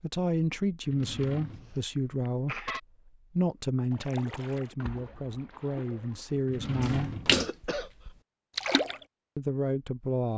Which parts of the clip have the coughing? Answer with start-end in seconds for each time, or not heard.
1.0-2.8, 7.3-7.9.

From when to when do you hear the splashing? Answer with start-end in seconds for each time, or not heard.
3.9-9.0.